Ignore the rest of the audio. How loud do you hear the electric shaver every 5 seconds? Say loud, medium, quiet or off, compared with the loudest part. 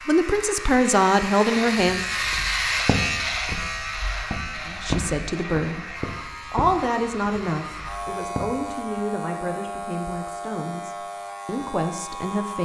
loud, medium, medium.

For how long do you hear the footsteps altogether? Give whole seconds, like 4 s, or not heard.
7 s.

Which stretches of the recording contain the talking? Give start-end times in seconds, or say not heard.
0.1-2.0, 4.7-12.6.